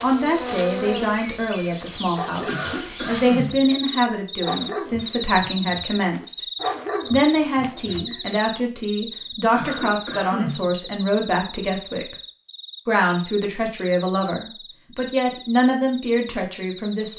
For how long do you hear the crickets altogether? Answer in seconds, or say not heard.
17 s.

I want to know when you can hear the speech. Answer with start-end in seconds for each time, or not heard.
0.0-6.5, 7.1-12.2, 12.8-17.1.